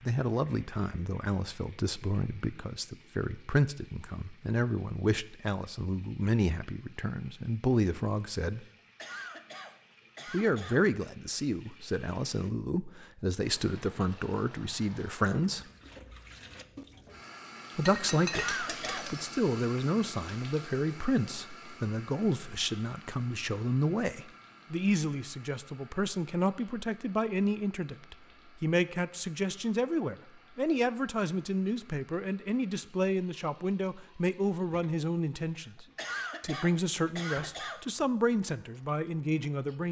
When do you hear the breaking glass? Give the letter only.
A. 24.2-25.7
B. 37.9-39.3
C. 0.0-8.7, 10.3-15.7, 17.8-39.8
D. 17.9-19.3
D.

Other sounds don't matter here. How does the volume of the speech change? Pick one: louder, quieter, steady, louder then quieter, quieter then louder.
steady.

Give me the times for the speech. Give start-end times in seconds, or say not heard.
0.0-8.7, 10.3-15.7, 17.8-39.8.